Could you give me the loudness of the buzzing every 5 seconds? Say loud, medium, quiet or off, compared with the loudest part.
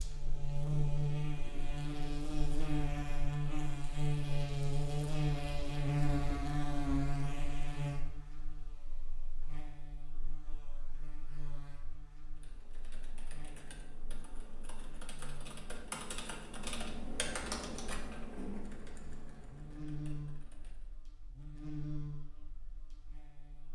loud, loud, quiet, quiet, medium.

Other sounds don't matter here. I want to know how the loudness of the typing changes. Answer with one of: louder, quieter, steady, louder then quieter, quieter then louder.
louder then quieter.